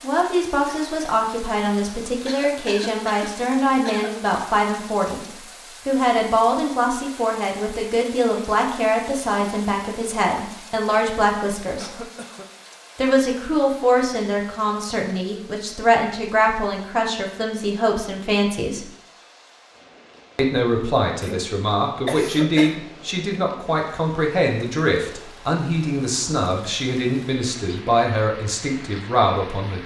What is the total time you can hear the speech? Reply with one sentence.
You can hear the speech for 27 seconds altogether.